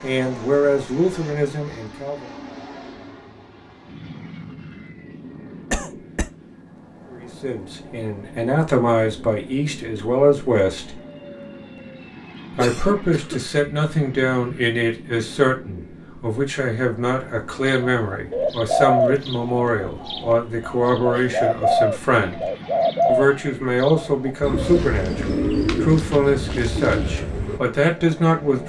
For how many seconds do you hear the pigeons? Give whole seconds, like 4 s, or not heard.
10 s.